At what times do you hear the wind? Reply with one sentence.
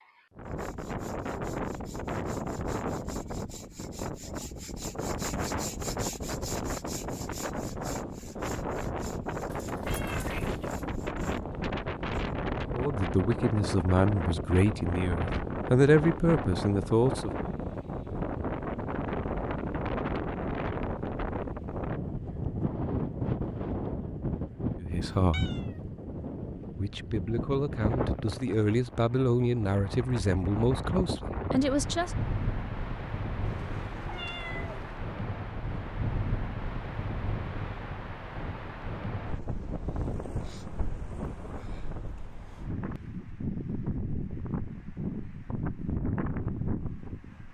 The wind can be heard from 0.3 to 47.5 s.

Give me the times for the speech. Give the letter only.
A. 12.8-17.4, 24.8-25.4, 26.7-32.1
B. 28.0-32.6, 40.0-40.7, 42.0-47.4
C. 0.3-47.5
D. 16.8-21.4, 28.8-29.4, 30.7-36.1
A.